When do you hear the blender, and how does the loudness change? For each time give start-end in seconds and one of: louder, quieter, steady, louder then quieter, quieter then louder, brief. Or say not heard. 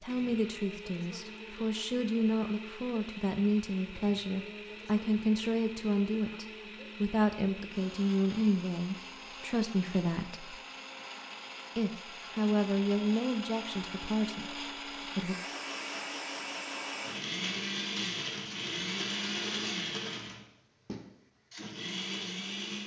0.0-22.8 louder.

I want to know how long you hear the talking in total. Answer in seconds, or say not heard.
14 s.